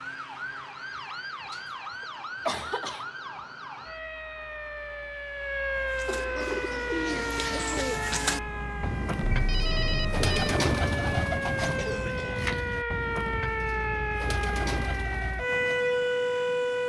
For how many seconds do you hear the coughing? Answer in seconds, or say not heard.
4 s.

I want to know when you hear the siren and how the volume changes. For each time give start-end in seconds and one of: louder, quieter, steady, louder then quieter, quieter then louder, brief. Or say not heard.
0.0-16.8 louder.